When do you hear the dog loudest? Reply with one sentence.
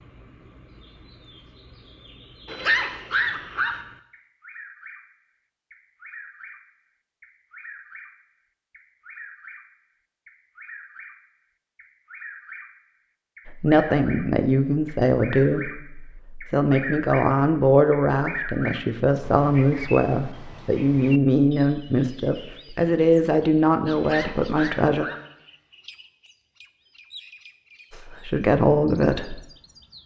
The loudest moment of the dog is at 3 seconds.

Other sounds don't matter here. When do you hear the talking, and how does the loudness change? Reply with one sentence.
The talking can be heard from 13.4 to 25.1 s, at a steady volume; and briefly from 27.9 to 29.4 s.